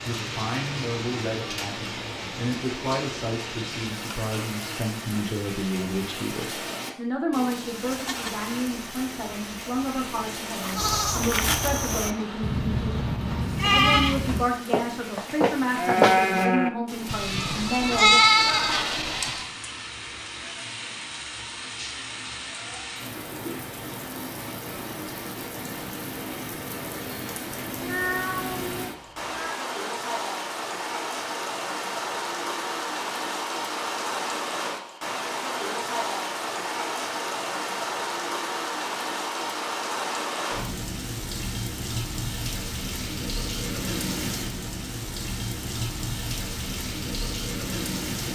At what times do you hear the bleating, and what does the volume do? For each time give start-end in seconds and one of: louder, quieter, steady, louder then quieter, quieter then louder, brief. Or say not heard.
7.8-19.5 louder.